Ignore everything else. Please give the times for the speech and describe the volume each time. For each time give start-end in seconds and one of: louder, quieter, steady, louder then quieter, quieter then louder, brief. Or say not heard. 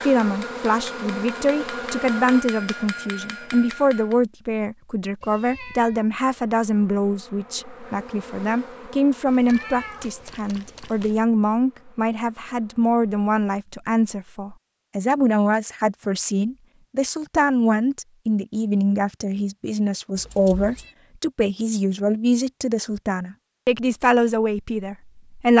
0.0-25.5 steady.